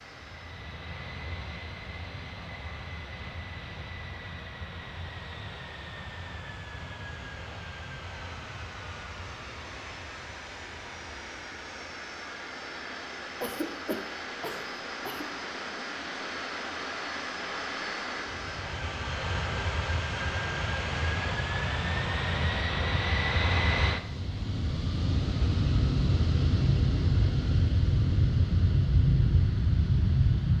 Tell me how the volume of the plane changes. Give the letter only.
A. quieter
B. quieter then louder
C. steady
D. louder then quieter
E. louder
E.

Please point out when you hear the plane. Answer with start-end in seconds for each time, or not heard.
0.0-30.5.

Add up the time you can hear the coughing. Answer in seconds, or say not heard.
2 s.